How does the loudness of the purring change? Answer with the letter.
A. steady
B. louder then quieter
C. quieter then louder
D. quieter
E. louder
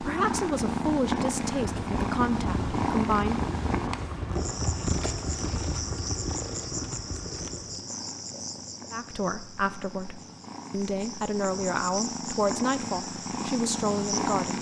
C.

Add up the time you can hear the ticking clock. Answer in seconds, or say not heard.
not heard.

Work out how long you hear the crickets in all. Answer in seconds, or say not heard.
10 s.